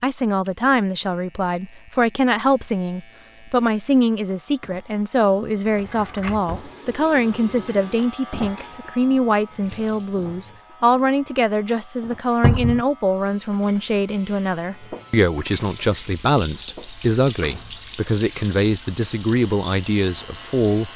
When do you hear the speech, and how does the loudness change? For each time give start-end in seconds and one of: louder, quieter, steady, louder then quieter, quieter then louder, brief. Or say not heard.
0.0-20.9 steady.